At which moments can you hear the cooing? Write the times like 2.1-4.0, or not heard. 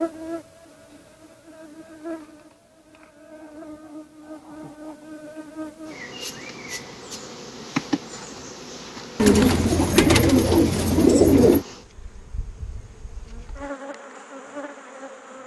9.2-11.7.